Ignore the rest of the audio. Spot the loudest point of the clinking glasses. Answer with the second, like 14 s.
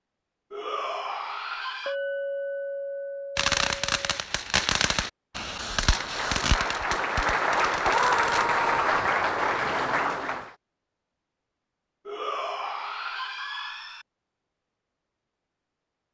2 s.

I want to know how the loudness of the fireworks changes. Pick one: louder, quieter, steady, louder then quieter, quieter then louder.
quieter.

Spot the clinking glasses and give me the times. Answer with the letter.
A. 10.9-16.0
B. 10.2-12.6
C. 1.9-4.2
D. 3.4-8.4
C.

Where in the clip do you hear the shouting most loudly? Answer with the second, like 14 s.
8 s.